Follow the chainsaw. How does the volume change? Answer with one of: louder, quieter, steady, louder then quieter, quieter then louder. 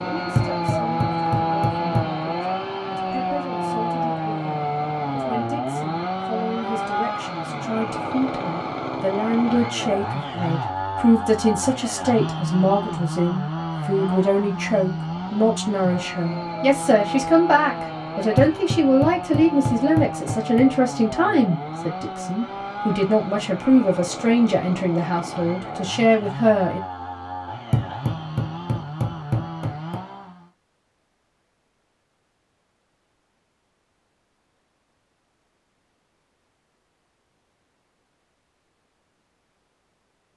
quieter.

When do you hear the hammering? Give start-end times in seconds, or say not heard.
0.3-2.0, 18.4-20.7, 27.7-30.0.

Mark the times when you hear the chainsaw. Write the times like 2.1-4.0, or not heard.
0.0-30.5.